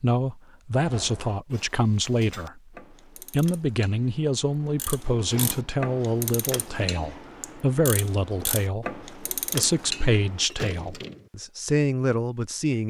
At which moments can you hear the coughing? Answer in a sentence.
You can't hear the coughing here.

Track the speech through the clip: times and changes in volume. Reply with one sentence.
You can hear the speech briefly from 0.0 to 2.6 s; and from 3.3 to 12.8 s, at a steady volume.